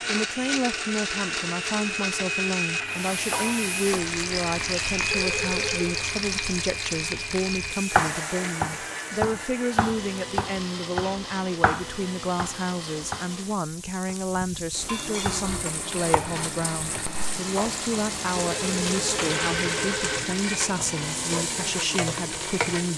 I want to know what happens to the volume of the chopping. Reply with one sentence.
The loudness of the chopping goes down, then up.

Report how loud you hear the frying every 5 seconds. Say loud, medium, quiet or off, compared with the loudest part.
loud, loud, medium, loud, loud.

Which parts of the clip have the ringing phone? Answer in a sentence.
The ringing phone can be heard from 5.1 to 6.0 s and from 18.4 to 20.1 s.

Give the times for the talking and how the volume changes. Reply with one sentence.
The talking can be heard from 0.1 to 22.9 s, at a steady volume.